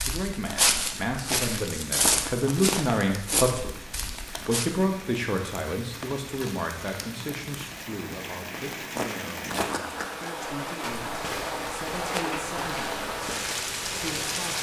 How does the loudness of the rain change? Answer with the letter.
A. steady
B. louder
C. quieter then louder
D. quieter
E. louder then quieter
B.